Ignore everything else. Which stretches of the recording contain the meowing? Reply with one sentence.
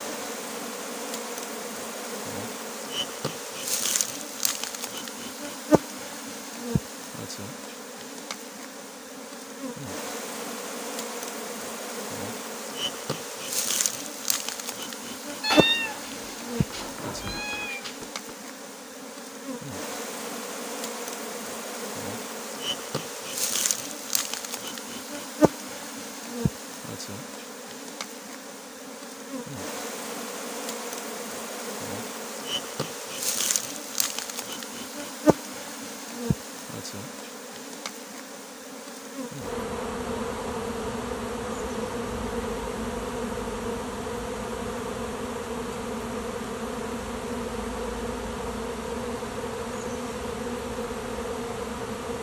You can hear the meowing from 15.4 to 17.9 s.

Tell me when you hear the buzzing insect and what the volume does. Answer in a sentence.
You can hear the buzzing insect from 0.0 to 52.1 s, at a steady volume.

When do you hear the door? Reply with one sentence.
The door can't be heard in this clip.